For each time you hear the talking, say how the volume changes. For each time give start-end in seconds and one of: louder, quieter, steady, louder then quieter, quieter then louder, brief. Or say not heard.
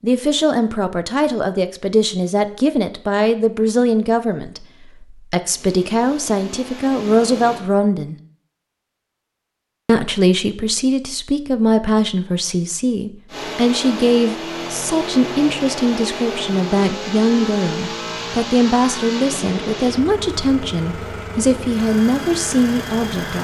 0.0-8.2 steady
9.8-23.4 steady.